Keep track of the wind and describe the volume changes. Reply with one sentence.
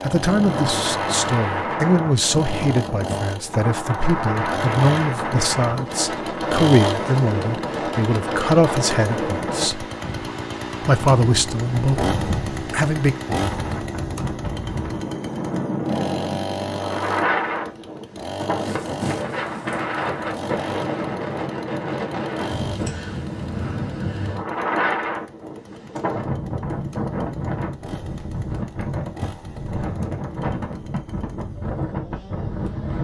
The volume of the wind stays about the same.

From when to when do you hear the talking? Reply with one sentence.
You can hear the talking from 0.0 to 9.8 s and from 10.8 to 13.2 s.